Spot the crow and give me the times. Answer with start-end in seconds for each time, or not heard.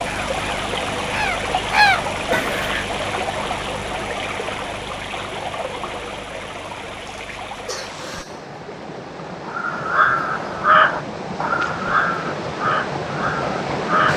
0.0-2.9, 9.4-14.1.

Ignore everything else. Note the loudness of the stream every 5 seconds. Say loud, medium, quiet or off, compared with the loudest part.
loud, medium, loud.